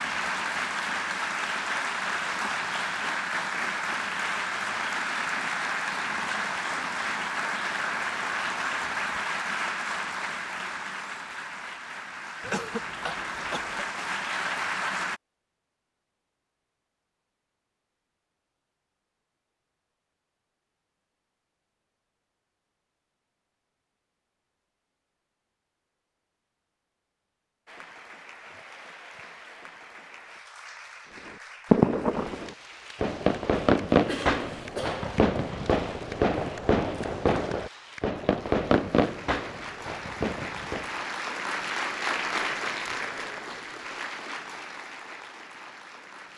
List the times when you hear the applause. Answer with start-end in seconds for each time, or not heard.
0.0-15.2, 27.6-46.3.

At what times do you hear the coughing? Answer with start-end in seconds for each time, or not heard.
12.4-13.9, 34.0-35.0.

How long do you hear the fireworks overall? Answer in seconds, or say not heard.
9 s.